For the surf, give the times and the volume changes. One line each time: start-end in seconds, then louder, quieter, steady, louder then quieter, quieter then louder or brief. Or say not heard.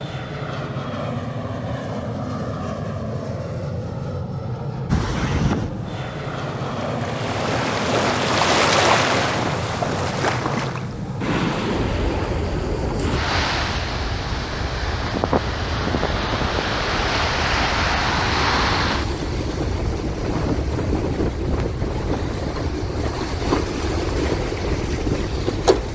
4.8-25.9 steady.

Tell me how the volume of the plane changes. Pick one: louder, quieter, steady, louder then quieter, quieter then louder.
quieter.